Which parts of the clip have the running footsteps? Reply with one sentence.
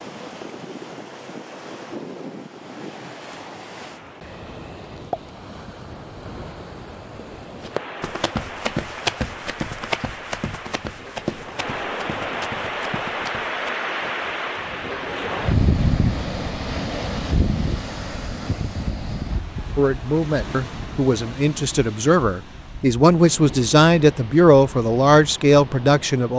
You can hear the running footsteps from 7.6 to 13.7 s.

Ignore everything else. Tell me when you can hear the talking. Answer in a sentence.
The talking can be heard from 19.8 to 26.3 s.